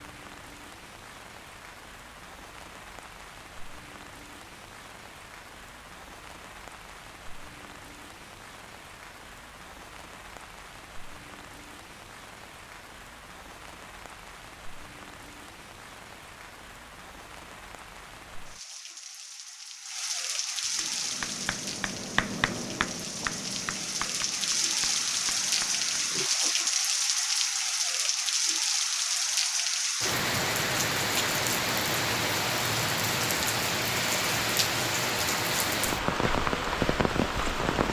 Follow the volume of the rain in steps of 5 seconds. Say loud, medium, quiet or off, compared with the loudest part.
quiet, quiet, quiet, quiet, medium, loud, loud, loud.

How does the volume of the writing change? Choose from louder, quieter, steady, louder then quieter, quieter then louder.
louder then quieter.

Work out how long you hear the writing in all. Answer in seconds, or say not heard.
6 s.